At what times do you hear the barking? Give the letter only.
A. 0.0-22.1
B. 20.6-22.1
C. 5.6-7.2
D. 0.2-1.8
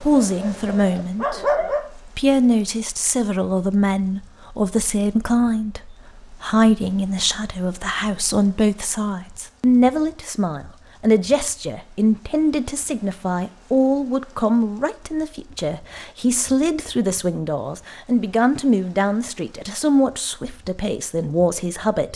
D.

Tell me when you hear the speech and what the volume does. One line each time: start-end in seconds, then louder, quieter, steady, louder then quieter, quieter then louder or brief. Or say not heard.
0.0-22.1 steady.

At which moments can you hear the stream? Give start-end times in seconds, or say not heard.
not heard.